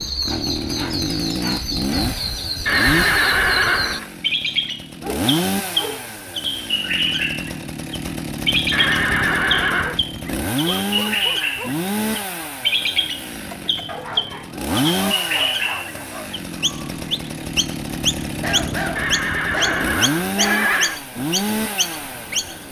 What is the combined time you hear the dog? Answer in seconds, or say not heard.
10 s.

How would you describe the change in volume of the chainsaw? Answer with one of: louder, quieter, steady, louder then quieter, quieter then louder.
steady.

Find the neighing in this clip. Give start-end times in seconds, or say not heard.
2.6-4.0, 8.7-10.0, 18.9-21.0.